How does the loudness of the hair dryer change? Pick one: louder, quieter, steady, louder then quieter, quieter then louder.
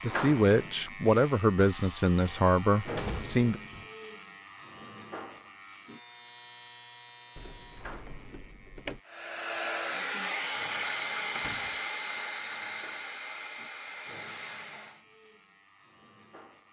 quieter.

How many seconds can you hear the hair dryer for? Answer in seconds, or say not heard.
6 s.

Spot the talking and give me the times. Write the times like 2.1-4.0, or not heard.
0.0-3.6.